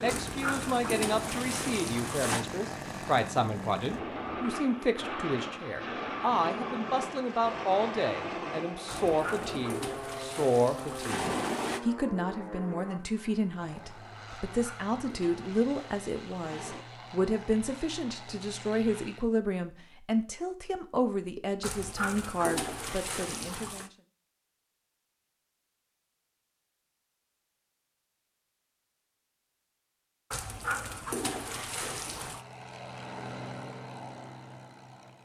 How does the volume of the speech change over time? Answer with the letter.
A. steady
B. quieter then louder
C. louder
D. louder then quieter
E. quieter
A.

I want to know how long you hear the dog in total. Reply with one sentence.
You can hear the dog for 12 seconds altogether.